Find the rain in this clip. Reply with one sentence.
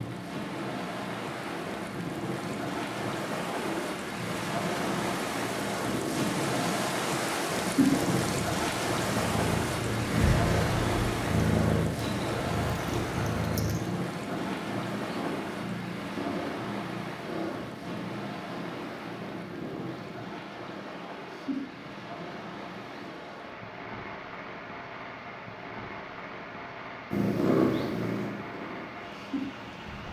You can hear the rain from 0.0 to 30.0 s.